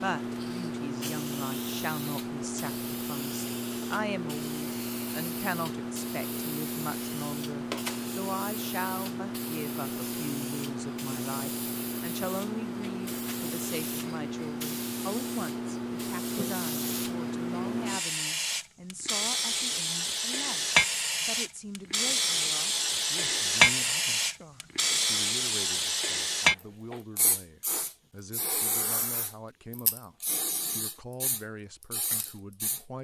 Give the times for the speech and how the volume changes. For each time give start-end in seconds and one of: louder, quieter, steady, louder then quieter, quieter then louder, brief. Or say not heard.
0.0-30.1 quieter
30.8-32.9 brief.